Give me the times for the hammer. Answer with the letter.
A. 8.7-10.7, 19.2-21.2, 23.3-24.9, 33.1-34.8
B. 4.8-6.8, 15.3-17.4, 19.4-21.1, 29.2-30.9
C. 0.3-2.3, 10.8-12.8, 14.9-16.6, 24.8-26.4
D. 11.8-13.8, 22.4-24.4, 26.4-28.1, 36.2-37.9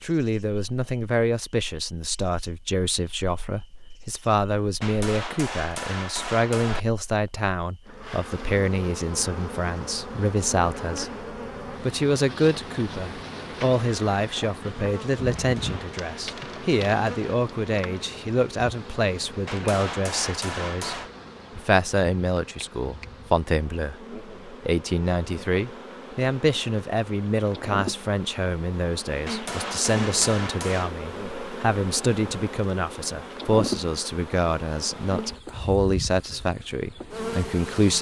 B.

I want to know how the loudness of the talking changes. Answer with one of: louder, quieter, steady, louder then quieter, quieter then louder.
steady.